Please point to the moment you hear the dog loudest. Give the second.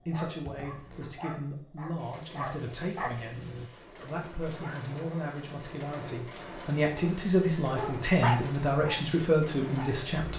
8 s.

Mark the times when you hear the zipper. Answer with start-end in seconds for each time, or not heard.
0.5-1.1.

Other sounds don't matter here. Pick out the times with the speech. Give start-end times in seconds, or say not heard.
0.1-10.3.